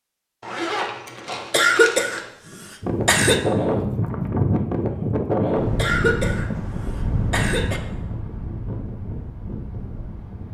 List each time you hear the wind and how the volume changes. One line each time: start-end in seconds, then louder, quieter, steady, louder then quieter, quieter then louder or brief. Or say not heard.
2.8-10.4 quieter.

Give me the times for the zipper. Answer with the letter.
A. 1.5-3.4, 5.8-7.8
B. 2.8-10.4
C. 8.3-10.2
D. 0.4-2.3
D.